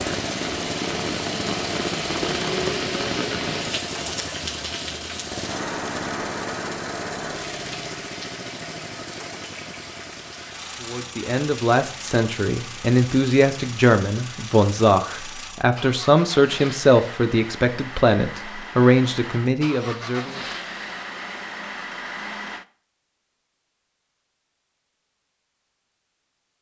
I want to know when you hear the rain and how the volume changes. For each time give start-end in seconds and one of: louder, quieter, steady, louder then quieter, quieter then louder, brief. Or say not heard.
0.0-15.5 quieter.